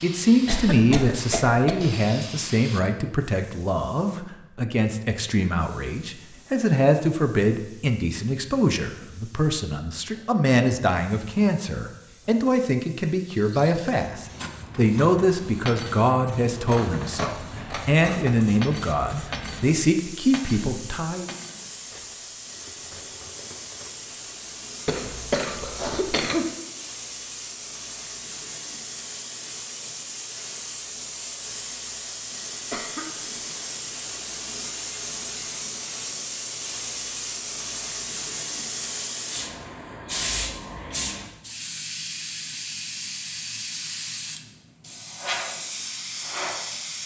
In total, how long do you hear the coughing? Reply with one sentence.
You can hear the coughing for 4 seconds altogether.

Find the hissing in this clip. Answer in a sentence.
The hissing can be heard from 0.0 to 47.0 s.